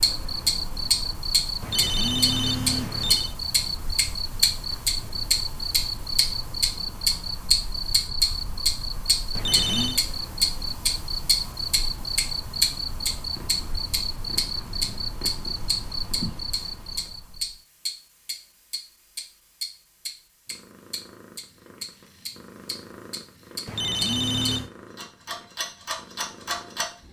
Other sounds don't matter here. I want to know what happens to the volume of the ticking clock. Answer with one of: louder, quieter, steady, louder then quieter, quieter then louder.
quieter.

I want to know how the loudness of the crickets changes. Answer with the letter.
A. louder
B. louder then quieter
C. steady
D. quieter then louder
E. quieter
C.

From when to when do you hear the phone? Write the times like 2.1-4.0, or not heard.
1.6-3.4, 9.3-10.0, 23.6-24.7.